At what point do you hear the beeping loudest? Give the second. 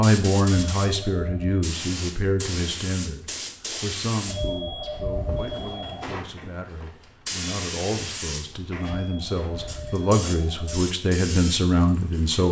5 s.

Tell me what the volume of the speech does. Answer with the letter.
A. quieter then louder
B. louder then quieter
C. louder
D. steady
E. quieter
A.